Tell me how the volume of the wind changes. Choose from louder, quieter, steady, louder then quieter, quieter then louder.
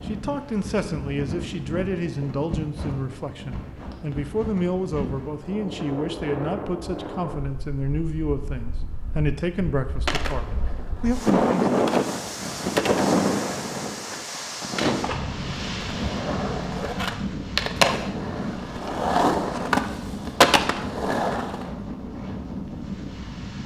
louder then quieter.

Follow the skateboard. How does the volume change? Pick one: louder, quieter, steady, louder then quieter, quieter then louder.
louder.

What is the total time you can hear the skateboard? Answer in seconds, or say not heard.
12 s.